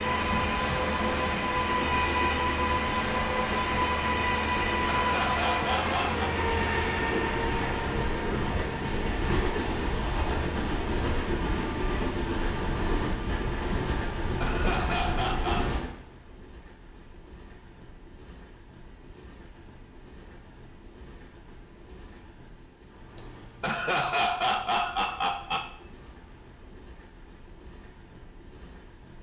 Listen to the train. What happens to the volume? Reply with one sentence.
The loudness of the train goes down.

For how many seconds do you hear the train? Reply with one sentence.
The train can be heard for 29 seconds in total.